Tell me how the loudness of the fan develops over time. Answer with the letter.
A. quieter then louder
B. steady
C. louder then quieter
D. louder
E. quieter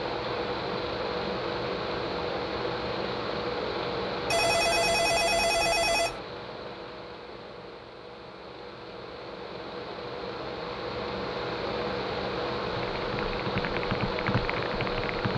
A.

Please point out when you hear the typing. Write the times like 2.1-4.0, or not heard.
12.7-15.3.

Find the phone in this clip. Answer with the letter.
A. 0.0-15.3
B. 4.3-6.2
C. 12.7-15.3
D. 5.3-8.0
B.